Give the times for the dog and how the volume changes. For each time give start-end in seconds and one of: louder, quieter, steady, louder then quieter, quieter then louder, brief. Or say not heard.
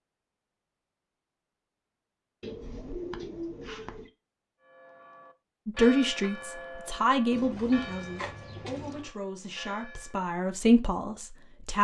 not heard.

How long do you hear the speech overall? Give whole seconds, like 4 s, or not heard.
6 s.